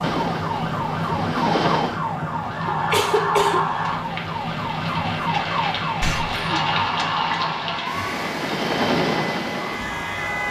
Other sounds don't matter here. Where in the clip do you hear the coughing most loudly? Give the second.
3 s.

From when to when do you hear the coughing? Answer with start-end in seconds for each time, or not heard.
2.6-3.6, 6.0-6.6.